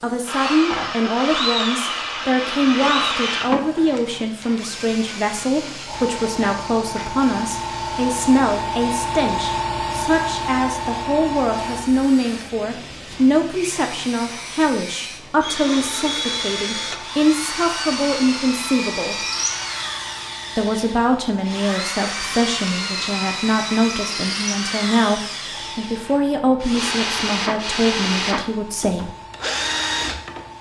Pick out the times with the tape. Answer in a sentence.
The tape can't be heard in this clip.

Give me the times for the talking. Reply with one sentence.
The talking can be heard from 0.0 to 19.1 s and from 20.6 to 29.1 s.